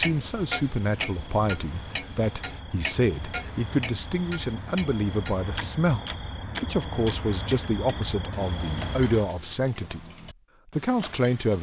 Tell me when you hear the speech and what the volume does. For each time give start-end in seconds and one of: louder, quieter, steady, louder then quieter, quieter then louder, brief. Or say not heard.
0.0-10.1 steady
10.8-11.5 brief.